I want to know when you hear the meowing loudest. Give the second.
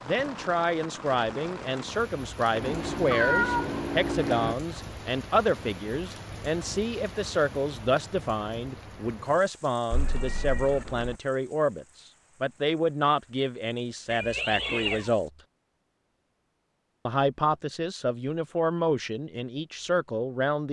3 s.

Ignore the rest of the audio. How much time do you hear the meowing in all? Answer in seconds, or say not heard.
4 s.